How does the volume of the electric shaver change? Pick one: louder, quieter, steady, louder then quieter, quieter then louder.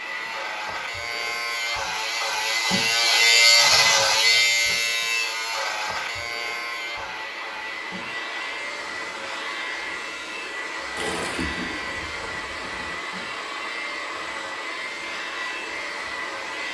quieter.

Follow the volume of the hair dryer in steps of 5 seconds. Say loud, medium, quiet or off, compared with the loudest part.
medium, loud, loud, loud.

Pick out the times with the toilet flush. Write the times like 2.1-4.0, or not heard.
10.9-12.9.